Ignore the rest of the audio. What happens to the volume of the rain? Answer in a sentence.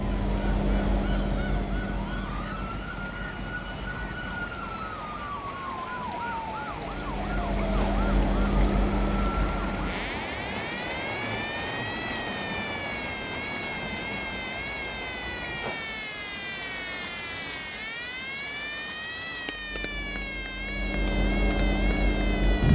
The volume of the rain goes up, then down.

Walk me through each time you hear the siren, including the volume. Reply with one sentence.
The siren can be heard from 0.0 to 22.6 s, at a steady volume.